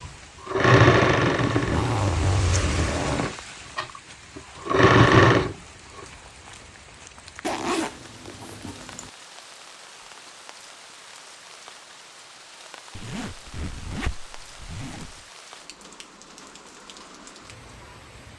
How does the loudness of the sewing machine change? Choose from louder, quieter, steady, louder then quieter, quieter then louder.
quieter then louder.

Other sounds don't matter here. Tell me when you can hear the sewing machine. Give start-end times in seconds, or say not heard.
0.1-5.5.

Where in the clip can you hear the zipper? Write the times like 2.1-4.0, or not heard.
1.6-3.4, 7.4-9.1, 12.9-15.2.